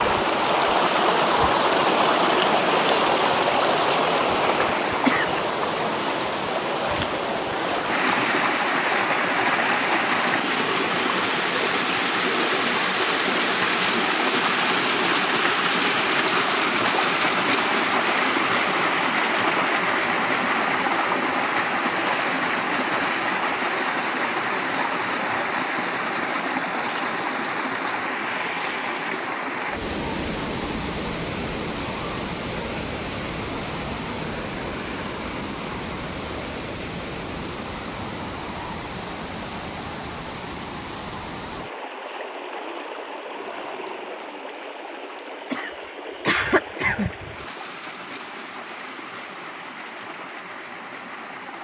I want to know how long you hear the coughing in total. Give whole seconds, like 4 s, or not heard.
3 s.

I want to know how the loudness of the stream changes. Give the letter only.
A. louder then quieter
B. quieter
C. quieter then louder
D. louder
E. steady
B.